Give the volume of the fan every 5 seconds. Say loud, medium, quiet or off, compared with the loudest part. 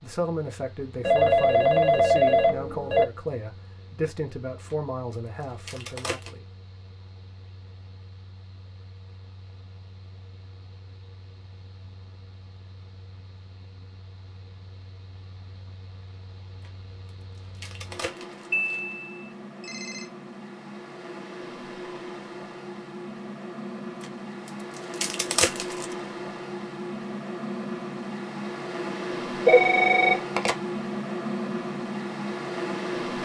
quiet, quiet, quiet, quiet, medium, loud, loud.